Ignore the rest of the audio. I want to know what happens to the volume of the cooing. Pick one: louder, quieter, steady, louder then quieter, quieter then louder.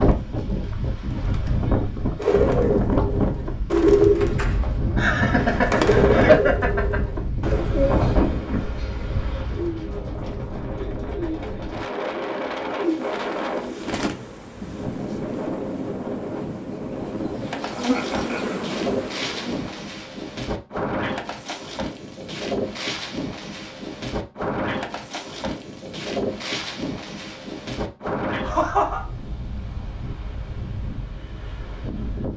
quieter.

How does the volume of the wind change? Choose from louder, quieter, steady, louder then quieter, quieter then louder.
quieter.